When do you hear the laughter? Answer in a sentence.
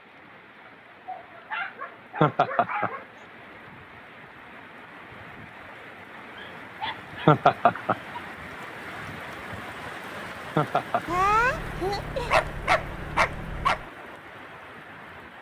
You can hear the laughter from 2.2 to 2.9 s, from 7.2 to 8.0 s and from 10.6 to 11.1 s.